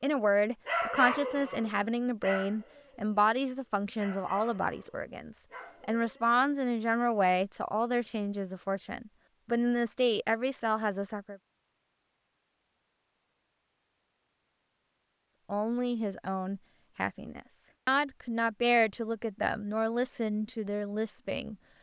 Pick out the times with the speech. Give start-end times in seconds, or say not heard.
0.0-11.3, 15.4-21.6.